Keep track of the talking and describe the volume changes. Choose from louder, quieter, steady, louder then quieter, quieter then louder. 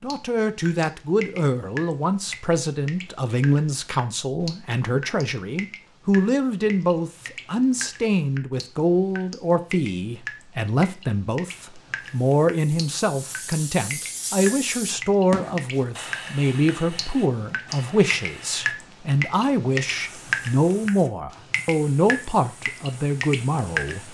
steady.